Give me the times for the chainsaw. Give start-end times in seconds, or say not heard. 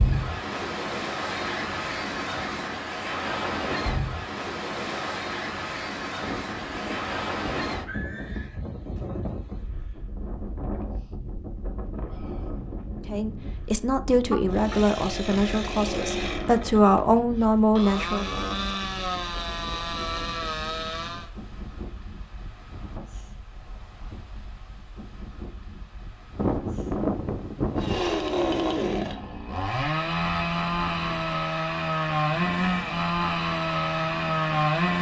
14.5-21.3, 27.8-34.9.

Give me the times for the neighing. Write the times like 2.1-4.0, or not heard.
6.2-8.6, 14.2-15.6, 26.4-28.0.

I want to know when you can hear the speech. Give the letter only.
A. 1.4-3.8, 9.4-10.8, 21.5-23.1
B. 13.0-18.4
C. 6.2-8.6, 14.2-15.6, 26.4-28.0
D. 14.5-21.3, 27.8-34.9
B.